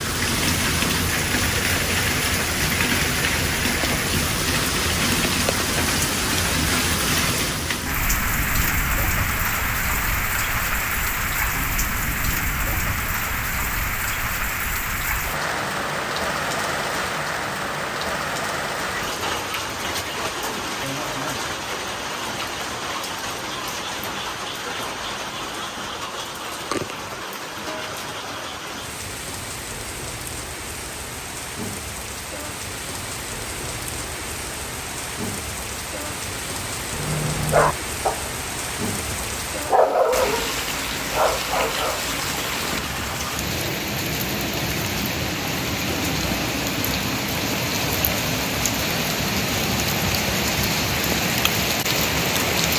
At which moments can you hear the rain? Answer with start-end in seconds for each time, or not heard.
0.0-52.7.